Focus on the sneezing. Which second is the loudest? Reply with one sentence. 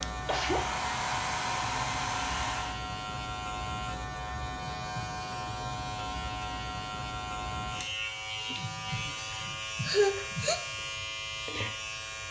The loudest moment of the sneezing is at 10 seconds.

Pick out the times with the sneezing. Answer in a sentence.
You can hear the sneezing from 0.2 to 0.7 s, from 4.5 to 5.2 s and from 8.5 to 10.6 s.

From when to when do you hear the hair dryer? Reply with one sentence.
The hair dryer can be heard from 0.0 to 2.8 s.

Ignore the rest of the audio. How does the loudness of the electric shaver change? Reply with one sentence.
The volume of the electric shaver stays about the same.